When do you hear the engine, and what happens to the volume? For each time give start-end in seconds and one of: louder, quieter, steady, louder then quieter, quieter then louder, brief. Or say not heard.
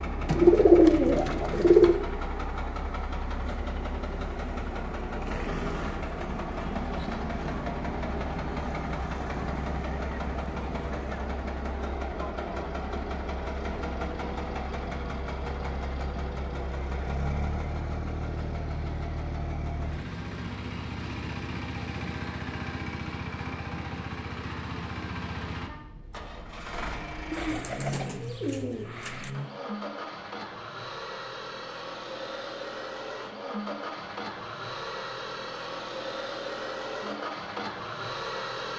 0.0-38.7 steady.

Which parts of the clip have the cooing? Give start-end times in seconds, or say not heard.
0.2-1.9, 27.3-29.3.